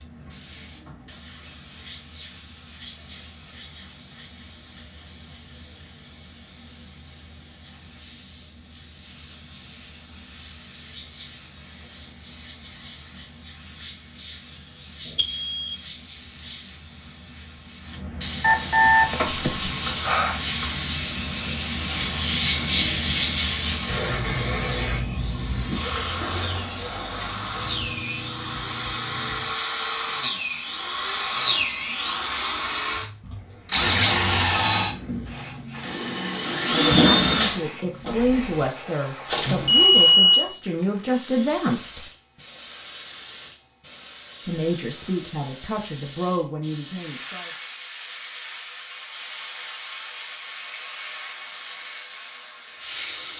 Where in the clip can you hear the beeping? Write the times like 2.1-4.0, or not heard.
15.2-15.8, 18.4-20.4, 39.3-40.5.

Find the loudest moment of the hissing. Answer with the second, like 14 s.
23 s.